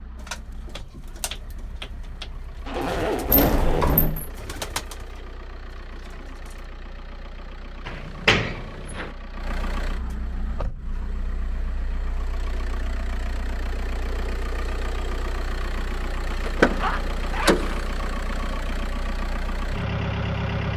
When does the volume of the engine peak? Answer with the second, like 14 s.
20 s.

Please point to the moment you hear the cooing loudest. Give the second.
5 s.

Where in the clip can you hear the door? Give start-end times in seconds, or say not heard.
3.2-4.3, 7.8-9.1, 16.4-17.9.